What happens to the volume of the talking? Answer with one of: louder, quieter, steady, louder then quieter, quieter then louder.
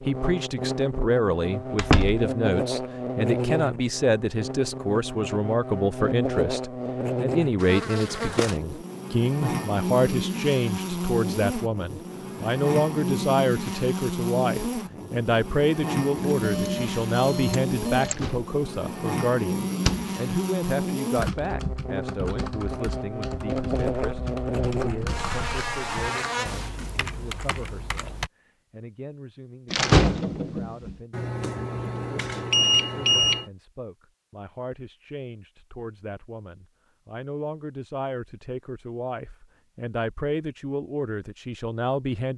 quieter then louder.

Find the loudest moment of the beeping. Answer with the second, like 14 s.
33 s.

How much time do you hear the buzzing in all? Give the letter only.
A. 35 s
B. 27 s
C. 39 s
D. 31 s
B.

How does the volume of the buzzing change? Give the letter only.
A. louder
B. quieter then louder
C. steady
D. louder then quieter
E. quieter
C.